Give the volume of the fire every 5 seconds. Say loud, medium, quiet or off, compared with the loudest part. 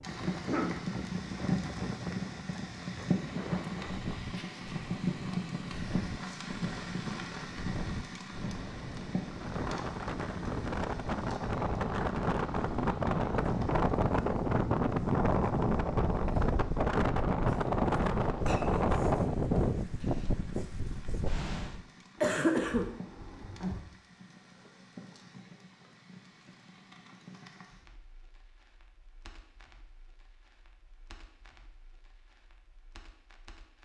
loud, loud, quiet, quiet, quiet, quiet, quiet.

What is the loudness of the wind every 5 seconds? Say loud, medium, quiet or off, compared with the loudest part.
quiet, quiet, loud, loud, medium, off, off.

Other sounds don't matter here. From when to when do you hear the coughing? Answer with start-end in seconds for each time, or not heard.
0.3-0.8, 22.2-23.8.